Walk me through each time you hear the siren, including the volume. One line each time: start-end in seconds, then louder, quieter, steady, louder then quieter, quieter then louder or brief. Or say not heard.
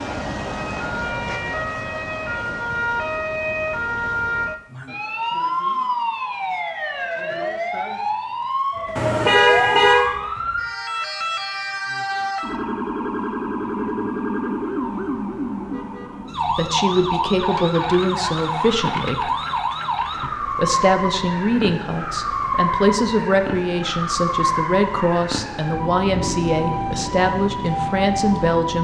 0.0-28.7 steady.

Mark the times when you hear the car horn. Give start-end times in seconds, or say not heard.
8.9-10.1.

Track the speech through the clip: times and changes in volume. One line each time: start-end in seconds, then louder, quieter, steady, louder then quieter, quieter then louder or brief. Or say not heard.
16.4-19.4 brief
20.2-28.7 steady.